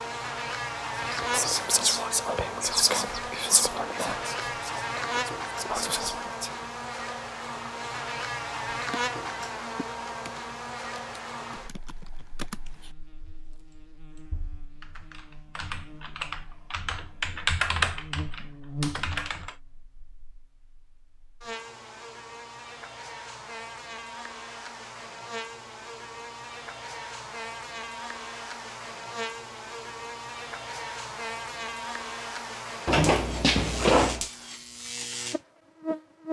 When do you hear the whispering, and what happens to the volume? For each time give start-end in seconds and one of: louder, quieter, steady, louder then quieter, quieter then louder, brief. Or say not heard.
1.0-6.5 quieter then louder.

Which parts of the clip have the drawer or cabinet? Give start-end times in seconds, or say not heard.
32.9-34.2.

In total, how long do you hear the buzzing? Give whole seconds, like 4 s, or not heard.
36 s.